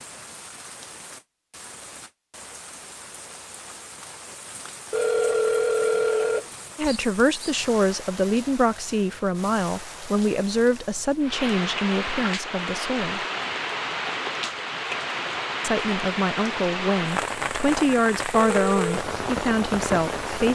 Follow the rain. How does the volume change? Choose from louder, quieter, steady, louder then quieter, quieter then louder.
louder.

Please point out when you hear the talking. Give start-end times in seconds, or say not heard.
6.8-13.2, 15.6-20.5.